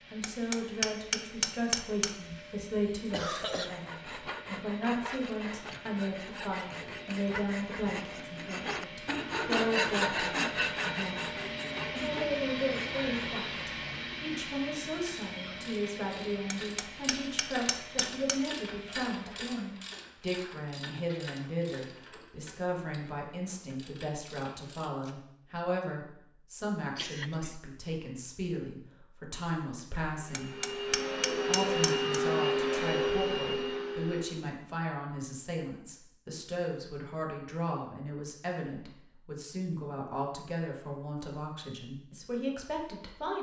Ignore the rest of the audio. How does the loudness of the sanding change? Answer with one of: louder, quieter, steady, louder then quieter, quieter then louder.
louder then quieter.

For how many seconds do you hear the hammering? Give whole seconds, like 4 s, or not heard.
6 s.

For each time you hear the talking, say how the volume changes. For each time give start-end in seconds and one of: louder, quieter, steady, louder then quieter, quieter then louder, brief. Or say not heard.
0.1-43.3 steady.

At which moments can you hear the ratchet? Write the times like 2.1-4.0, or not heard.
15.0-25.1.